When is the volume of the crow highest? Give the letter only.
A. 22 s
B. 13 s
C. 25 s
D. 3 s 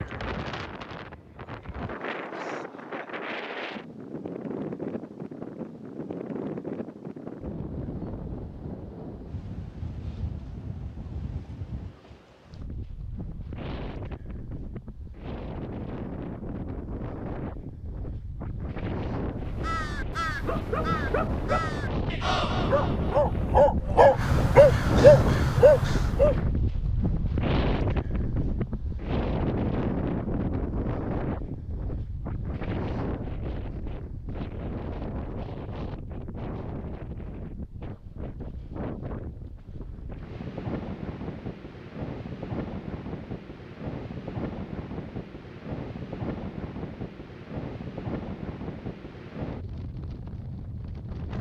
C.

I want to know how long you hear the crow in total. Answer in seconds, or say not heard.
7 s.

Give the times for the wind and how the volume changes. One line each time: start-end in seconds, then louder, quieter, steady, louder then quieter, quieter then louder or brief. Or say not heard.
0.0-51.3 louder then quieter.